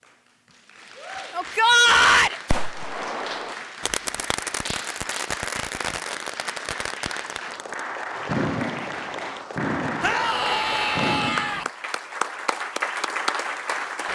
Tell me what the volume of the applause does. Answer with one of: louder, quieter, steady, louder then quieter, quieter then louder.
louder.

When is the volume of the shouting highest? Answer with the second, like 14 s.
2 s.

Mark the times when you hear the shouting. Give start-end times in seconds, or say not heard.
1.3-2.4, 10.0-11.7.